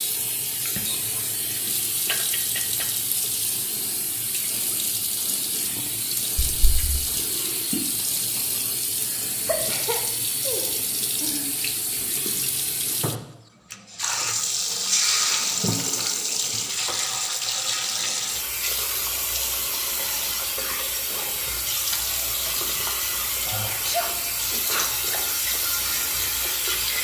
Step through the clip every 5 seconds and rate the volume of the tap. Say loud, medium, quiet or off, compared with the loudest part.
medium, medium, loud, loud, loud, loud.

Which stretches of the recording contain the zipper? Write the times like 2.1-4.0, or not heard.
not heard.